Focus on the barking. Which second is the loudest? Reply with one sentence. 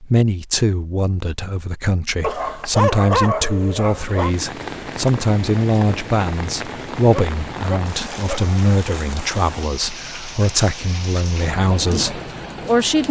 The loudest moment of the barking is at 3 seconds.